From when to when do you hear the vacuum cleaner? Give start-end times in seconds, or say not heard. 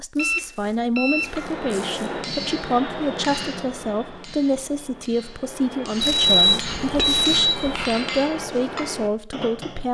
not heard.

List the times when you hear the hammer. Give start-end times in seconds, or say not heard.
1.1-9.8.